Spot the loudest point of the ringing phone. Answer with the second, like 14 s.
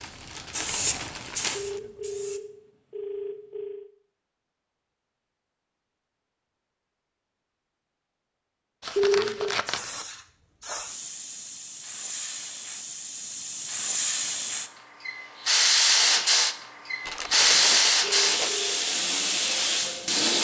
9 s.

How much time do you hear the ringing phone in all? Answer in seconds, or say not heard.
4 s.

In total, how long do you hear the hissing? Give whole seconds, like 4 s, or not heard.
13 s.